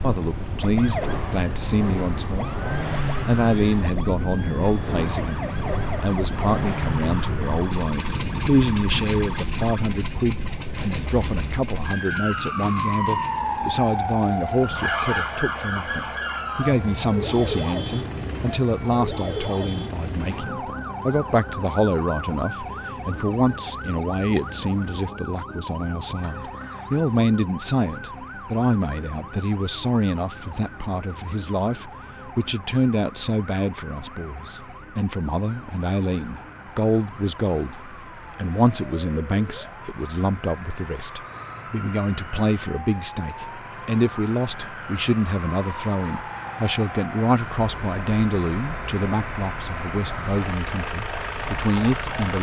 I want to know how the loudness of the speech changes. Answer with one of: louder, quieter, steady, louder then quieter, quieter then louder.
steady.